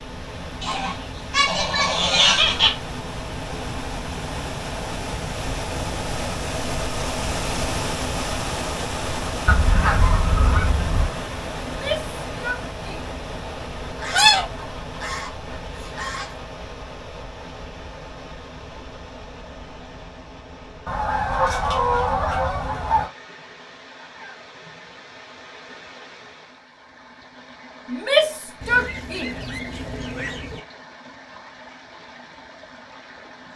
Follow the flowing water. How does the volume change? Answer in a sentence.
The volume of the flowing water goes down.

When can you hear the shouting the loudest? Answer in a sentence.
The loudest moment of the shouting is at 28 seconds.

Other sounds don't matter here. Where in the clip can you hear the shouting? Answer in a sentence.
You can hear the shouting from 11.6 to 13.2 s and from 27.9 to 29.4 s.